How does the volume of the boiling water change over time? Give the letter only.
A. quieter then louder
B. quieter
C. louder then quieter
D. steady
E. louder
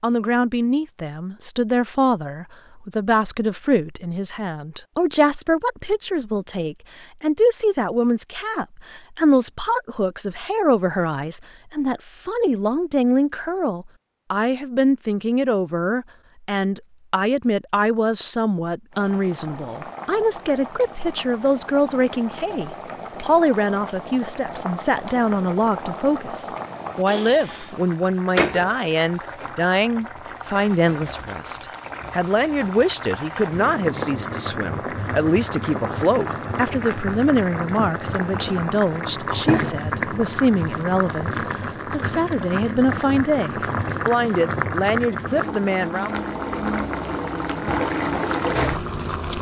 E.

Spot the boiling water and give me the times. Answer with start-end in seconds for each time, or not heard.
18.9-49.3.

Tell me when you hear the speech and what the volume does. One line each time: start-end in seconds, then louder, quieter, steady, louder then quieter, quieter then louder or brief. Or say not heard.
0.0-46.2 steady.